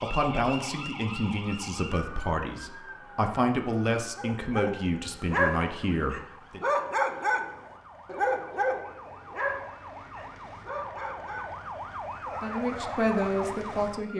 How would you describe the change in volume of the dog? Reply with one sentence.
The volume of the dog goes down.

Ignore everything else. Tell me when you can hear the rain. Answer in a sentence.
You can't hear the rain here.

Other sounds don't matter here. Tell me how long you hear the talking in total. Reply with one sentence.
The talking can be heard for 8 seconds in total.